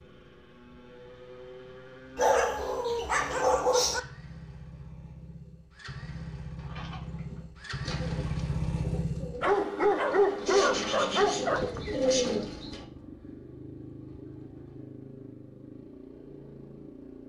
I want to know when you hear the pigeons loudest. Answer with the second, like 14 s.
12 s.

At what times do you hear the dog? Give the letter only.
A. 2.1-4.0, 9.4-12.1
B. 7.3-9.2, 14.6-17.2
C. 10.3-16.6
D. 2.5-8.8
A.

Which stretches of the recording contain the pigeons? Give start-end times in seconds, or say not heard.
6.6-12.8.